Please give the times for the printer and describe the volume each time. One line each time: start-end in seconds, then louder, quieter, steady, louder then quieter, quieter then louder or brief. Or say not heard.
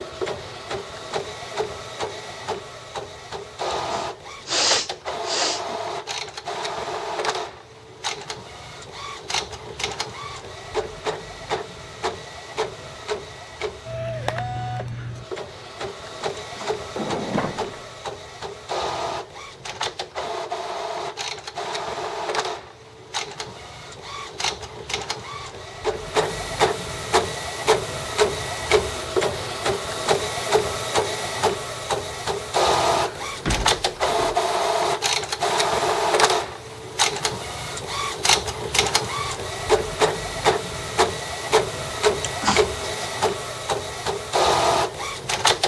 0.0-45.6 louder.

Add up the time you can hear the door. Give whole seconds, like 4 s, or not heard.
2 s.